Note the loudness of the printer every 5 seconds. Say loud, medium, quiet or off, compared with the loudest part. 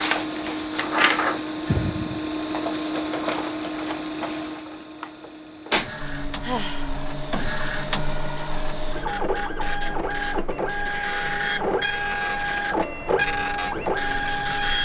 loud, medium, loud.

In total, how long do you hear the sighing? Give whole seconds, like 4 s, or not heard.
2 s.